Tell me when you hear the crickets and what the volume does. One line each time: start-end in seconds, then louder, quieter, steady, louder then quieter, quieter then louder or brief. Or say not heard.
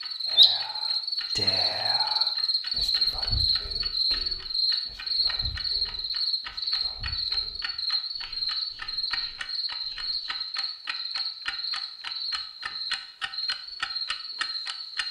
0.0-15.0 quieter.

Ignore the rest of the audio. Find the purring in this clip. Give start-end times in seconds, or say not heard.
not heard.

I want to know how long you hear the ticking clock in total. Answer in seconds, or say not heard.
15 s.